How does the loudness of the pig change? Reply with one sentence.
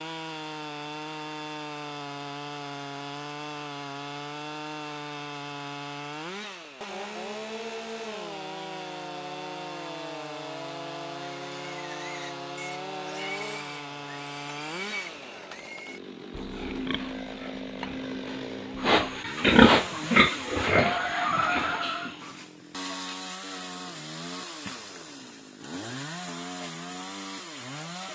The volume of the pig goes up.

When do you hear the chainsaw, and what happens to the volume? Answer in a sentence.
The chainsaw can be heard from 0.0 to 28.1 s, at a steady volume.